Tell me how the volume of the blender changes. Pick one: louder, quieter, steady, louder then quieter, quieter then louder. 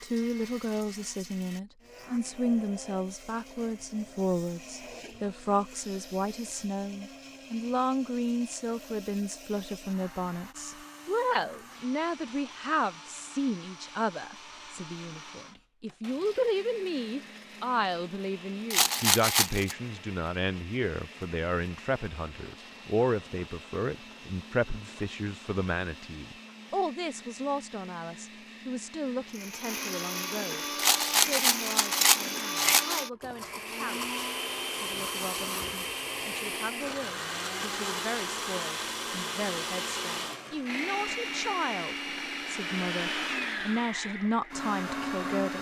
louder.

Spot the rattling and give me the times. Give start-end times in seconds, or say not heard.
18.7-19.8, 30.8-33.0.